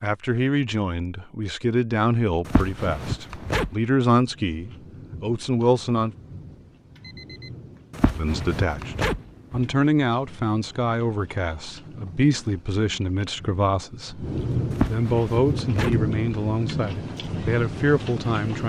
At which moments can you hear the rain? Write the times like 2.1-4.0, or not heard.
4.2-18.6.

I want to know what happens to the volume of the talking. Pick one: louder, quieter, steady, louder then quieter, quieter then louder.
steady.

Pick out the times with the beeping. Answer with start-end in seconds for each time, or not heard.
7.0-7.5.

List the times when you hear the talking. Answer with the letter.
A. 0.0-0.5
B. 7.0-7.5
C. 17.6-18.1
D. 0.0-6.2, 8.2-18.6
D.